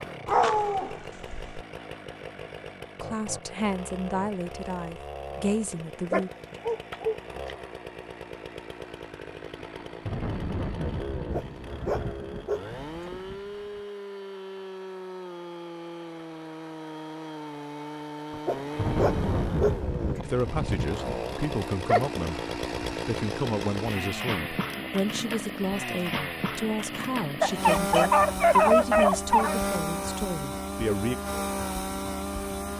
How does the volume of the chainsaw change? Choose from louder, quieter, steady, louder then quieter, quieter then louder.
louder.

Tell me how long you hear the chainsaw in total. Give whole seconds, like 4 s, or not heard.
33 s.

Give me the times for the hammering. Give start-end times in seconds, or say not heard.
not heard.